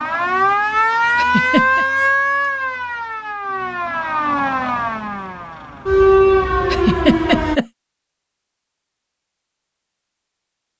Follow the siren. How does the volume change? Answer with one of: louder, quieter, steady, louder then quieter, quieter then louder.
quieter then louder.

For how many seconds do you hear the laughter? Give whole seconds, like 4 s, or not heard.
2 s.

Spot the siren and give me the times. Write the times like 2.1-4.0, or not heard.
0.0-7.6.